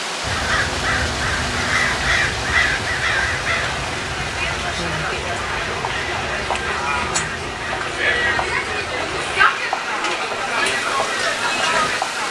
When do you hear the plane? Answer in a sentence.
The plane can't be heard in this clip.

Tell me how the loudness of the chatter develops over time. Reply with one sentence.
The volume of the chatter goes up.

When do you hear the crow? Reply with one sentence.
The crow can be heard from 0.2 to 9.4 s.